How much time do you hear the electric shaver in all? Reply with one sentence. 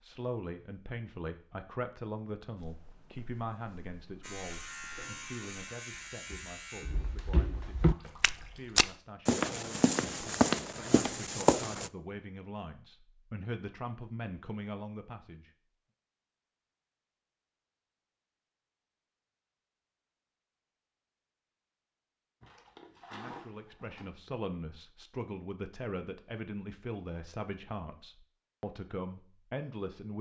You can hear the electric shaver for 3 seconds altogether.